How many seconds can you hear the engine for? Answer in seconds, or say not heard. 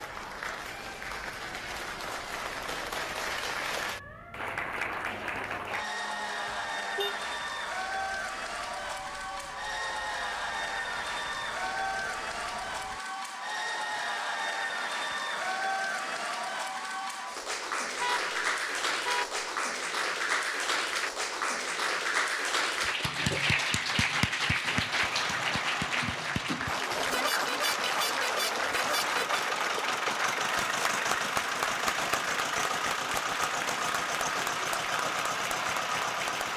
12 s.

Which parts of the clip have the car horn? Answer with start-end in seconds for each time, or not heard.
6.5-7.2, 18.0-19.4, 26.9-29.4.